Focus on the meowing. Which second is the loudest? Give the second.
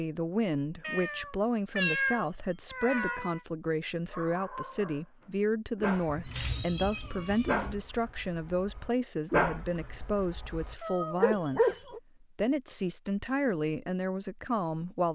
2 s.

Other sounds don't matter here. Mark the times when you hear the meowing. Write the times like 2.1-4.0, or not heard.
0.8-3.4, 5.8-7.7, 10.8-11.8.